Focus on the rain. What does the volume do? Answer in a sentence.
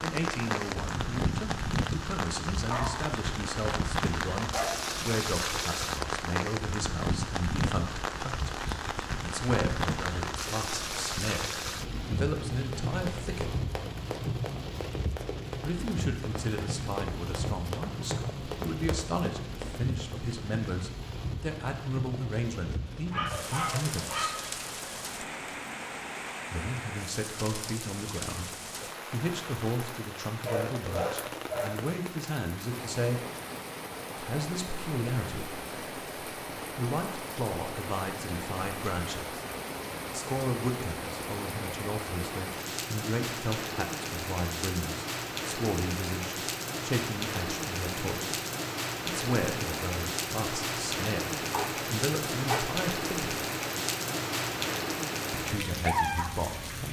The loudness of the rain goes down, then up.